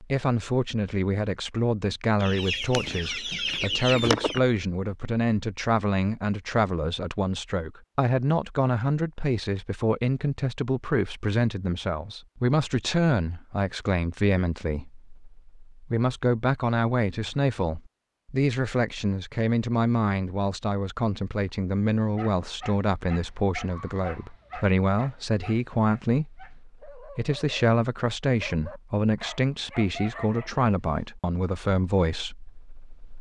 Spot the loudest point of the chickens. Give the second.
4 s.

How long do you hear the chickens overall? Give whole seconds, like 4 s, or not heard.
2 s.